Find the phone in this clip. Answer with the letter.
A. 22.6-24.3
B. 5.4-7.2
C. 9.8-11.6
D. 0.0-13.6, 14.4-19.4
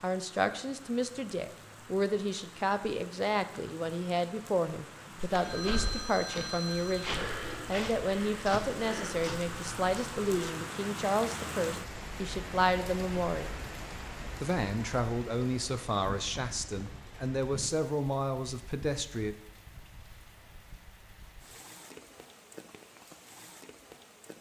B.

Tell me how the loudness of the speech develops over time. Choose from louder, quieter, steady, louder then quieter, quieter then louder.
steady.